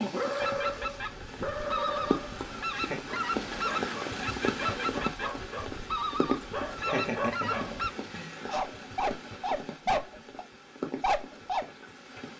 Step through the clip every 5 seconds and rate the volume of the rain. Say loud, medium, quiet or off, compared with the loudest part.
loud, loud, medium.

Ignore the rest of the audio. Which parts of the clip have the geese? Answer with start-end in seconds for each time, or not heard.
0.4-7.9.